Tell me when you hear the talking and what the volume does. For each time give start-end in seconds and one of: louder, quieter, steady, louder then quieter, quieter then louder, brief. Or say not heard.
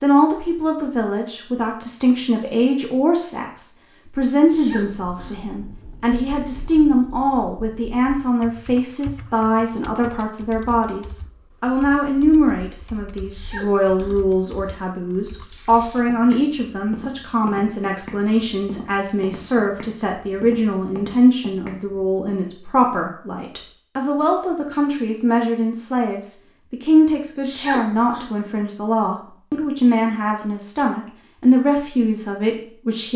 0.0-33.1 steady.